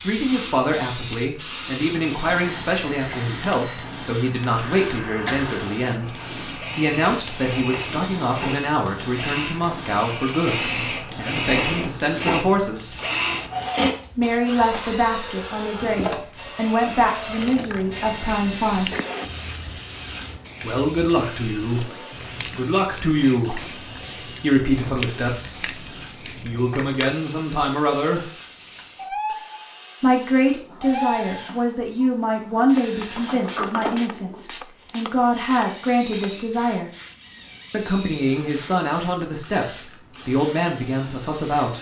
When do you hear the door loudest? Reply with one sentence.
The loudest moment of the door is at 34 seconds.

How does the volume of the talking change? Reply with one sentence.
The loudness of the talking stays about the same.